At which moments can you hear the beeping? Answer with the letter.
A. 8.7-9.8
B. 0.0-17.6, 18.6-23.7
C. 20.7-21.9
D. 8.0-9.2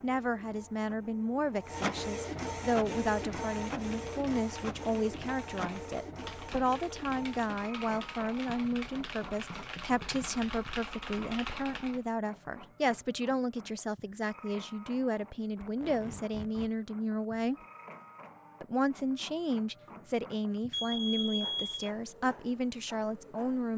C.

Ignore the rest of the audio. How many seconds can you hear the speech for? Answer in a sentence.
The speech can be heard for 23 seconds in total.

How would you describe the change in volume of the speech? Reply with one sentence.
The loudness of the speech stays about the same.